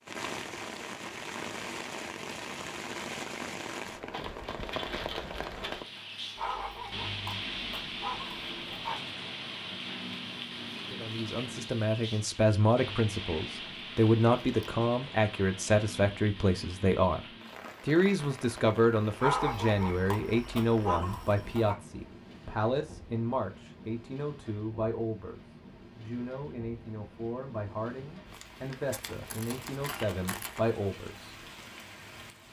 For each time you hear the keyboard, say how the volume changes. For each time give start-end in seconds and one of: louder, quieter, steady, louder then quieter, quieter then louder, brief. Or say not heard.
not heard.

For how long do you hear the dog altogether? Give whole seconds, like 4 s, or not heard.
5 s.